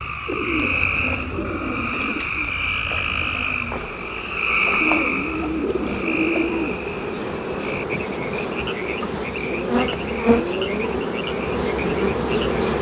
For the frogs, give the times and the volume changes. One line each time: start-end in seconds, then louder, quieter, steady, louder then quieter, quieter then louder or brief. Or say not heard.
0.0-12.7 quieter.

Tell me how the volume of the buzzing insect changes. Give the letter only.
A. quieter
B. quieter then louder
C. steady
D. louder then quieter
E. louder
E.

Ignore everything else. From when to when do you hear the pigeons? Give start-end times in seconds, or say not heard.
0.2-2.5, 4.8-6.9, 9.5-10.9.